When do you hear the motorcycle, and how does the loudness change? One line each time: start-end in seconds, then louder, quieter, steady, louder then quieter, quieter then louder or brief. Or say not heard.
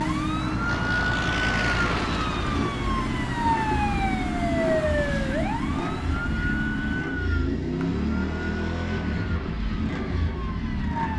0.0-11.1 steady.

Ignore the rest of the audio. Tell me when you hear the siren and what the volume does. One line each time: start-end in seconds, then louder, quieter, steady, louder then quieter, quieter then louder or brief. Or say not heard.
0.0-11.1 quieter.